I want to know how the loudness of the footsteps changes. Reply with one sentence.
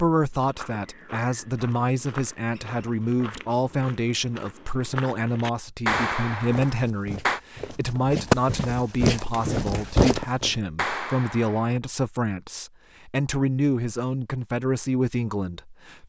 The volume of the footsteps goes up.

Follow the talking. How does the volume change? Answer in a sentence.
The volume of the talking stays about the same.